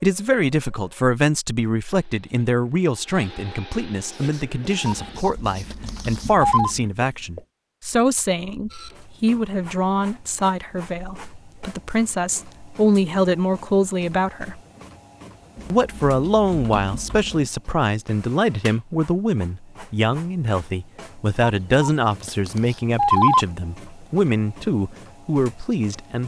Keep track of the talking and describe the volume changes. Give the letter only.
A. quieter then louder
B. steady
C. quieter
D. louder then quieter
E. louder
B.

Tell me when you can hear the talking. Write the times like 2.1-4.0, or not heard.
0.0-14.6, 15.7-26.2.